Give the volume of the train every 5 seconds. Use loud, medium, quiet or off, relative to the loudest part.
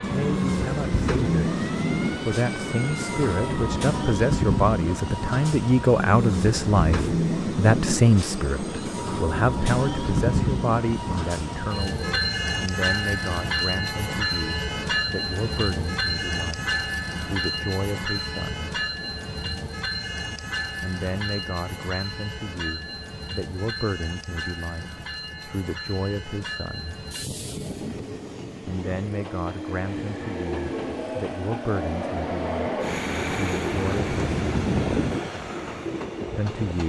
loud, loud, loud, loud, medium, medium, loud, medium.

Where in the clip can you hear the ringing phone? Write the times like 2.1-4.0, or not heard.
not heard.